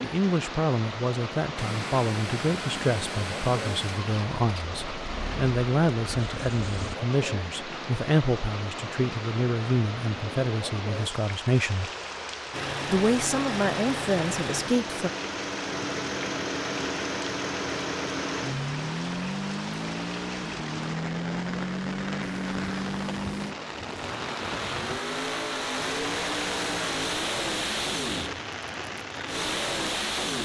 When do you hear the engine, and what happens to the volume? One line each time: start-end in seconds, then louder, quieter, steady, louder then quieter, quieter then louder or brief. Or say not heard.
1.6-7.0 quieter
12.5-30.4 steady.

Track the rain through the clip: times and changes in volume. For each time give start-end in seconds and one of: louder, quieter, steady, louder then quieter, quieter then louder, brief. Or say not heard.
0.0-30.4 steady.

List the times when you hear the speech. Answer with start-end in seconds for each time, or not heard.
0.0-11.9, 12.8-15.1.